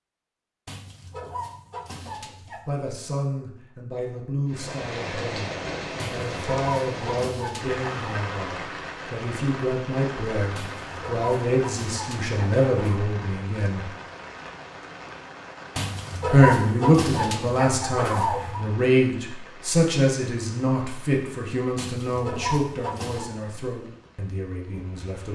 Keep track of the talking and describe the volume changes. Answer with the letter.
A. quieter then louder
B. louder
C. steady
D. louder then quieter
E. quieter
D.